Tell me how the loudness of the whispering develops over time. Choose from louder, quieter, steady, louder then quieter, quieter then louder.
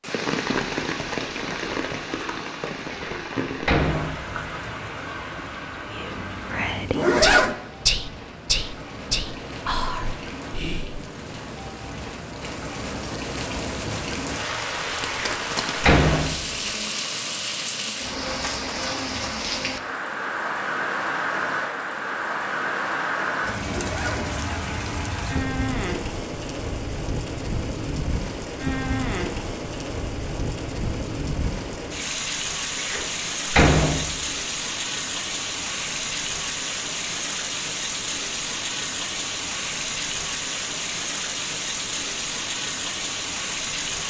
louder then quieter.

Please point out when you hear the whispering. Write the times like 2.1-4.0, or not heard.
5.8-11.0.